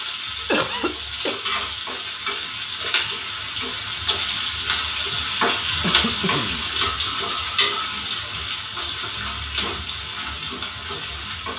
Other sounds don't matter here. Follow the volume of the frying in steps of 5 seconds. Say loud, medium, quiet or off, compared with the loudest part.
loud, loud, medium.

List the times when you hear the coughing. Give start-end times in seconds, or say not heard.
0.5-1.4, 5.8-6.7.